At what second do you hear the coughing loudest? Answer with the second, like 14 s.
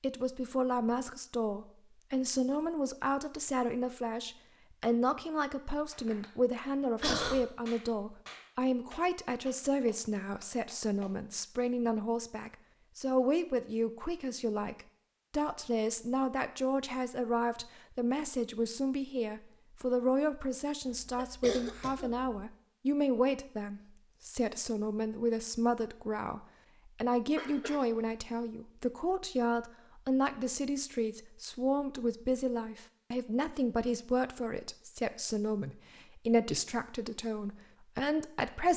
7 s.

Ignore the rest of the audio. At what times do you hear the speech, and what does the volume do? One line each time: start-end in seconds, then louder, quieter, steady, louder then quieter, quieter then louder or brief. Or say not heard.
0.0-38.7 steady.